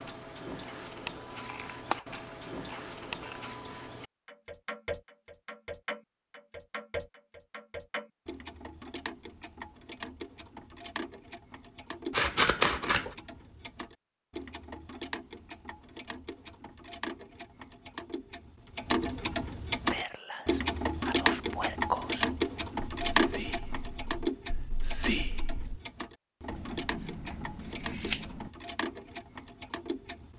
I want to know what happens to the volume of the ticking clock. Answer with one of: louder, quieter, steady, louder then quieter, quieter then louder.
louder then quieter.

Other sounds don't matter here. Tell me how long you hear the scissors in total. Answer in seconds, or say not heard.
5 s.